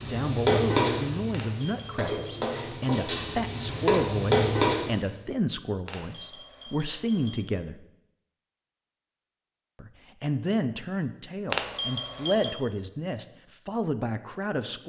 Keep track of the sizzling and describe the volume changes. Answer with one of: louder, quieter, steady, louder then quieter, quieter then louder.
quieter then louder.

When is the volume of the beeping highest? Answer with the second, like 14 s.
12 s.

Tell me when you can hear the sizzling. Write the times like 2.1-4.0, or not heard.
0.0-5.1.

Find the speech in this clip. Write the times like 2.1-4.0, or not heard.
0.0-7.8, 9.8-14.8.